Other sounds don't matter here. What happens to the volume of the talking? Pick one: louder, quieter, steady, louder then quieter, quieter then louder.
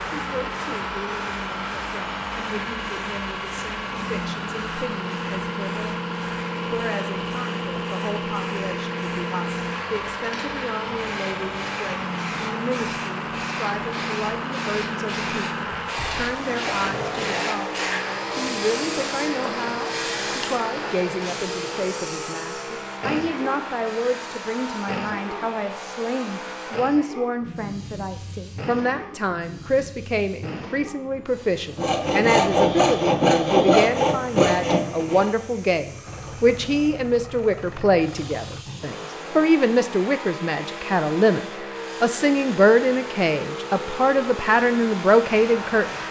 louder.